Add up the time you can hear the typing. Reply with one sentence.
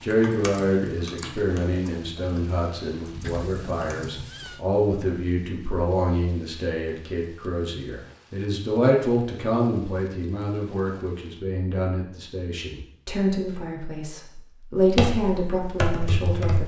The typing can be heard for 6 seconds in total.